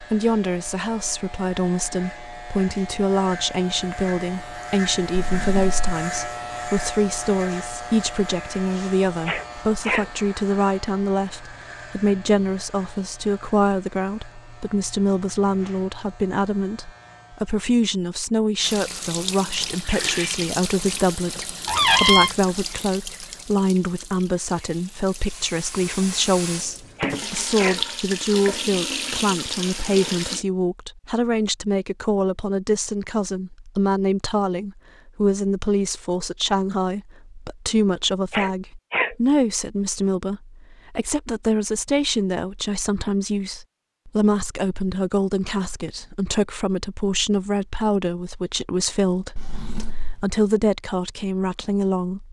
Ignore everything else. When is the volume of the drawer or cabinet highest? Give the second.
22 s.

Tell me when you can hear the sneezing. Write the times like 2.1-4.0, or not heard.
9.2-10.1, 26.9-27.8, 38.3-39.1.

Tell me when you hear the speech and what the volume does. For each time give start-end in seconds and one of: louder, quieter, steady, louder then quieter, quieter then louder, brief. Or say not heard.
0.0-52.2 steady.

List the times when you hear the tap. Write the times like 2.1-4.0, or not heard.
18.6-30.4.